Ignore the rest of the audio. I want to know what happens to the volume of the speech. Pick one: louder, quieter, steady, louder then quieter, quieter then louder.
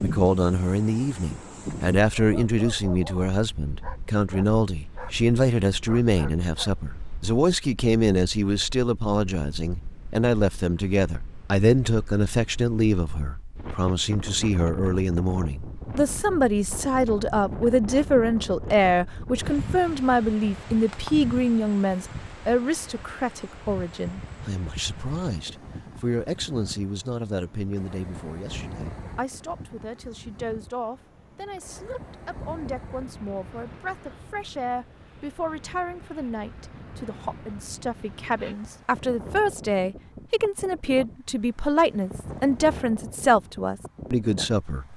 quieter then louder.